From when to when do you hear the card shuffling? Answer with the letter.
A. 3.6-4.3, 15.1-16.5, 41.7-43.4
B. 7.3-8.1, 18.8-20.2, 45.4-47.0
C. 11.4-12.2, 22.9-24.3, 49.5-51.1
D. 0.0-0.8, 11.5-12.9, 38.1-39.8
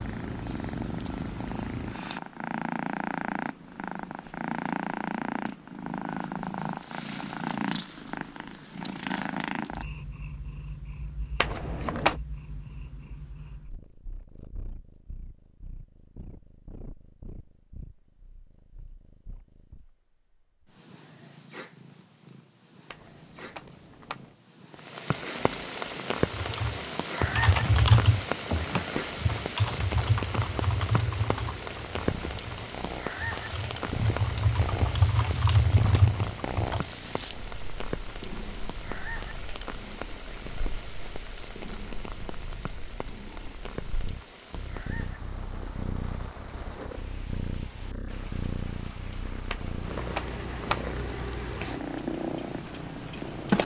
C.